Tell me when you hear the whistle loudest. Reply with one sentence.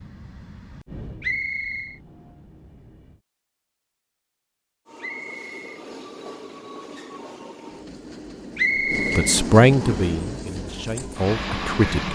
The volume of the whistle peaks at 9 seconds.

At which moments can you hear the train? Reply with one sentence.
You can hear the train from 0.0 to 3.2 s and from 4.8 to 12.0 s.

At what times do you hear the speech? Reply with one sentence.
The speech can be heard from 9.2 to 12.0 s.